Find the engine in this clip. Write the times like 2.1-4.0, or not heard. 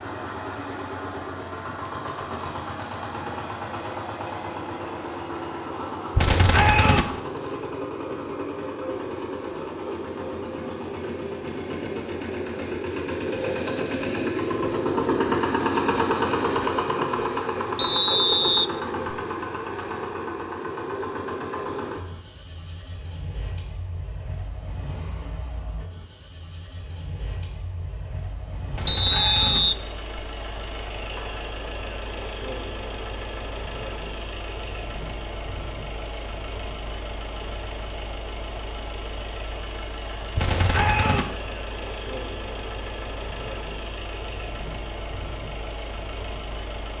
0.0-46.9.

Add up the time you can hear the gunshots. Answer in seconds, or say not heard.
3 s.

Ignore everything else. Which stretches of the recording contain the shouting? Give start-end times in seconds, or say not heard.
not heard.